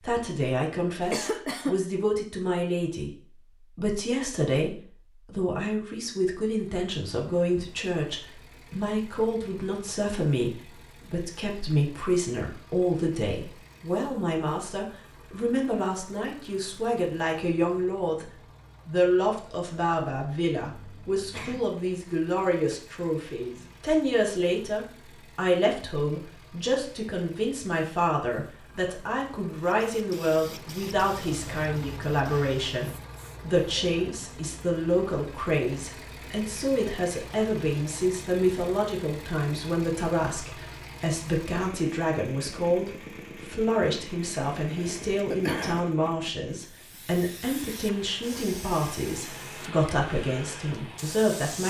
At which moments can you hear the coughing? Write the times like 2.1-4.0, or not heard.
1.0-1.8, 20.6-21.6, 44.7-45.9.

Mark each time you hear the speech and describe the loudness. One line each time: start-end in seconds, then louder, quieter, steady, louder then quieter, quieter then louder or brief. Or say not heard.
0.0-51.6 steady.